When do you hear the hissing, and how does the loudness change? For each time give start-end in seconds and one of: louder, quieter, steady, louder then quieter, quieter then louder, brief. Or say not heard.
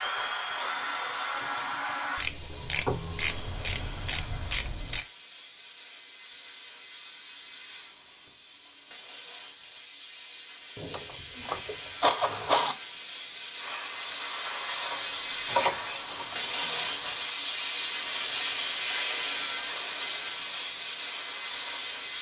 0.0-22.1 louder.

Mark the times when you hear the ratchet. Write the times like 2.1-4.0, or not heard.
2.2-5.0, 10.8-12.8, 15.4-17.2.